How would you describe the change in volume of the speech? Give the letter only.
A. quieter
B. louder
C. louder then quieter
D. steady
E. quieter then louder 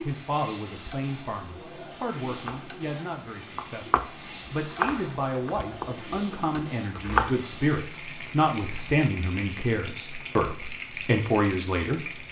B.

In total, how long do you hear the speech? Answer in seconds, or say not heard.
12 s.